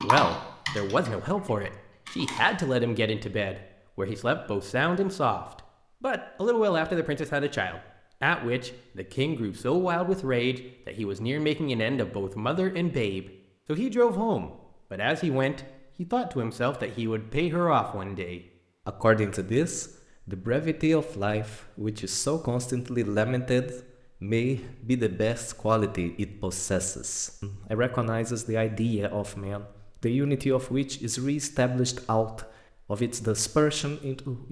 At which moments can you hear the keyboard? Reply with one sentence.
The keyboard can be heard from 0.0 to 2.4 s.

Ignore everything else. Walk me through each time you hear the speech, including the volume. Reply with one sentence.
The speech can be heard from 0.0 to 34.4 s, at a steady volume.